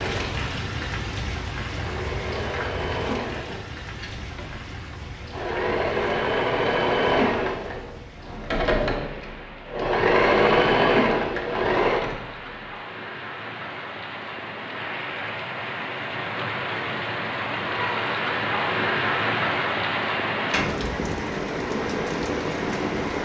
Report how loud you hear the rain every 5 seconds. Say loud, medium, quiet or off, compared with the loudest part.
medium, quiet, medium, loud, loud.